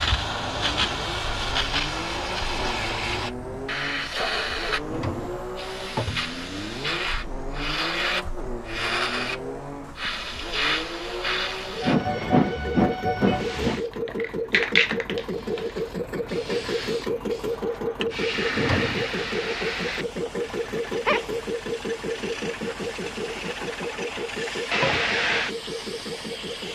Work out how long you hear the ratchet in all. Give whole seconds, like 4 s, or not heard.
not heard.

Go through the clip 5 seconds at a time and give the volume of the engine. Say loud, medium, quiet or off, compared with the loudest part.
medium, medium, loud, loud, loud, medium.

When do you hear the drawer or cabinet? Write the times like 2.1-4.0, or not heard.
4.8-6.3, 18.4-19.1.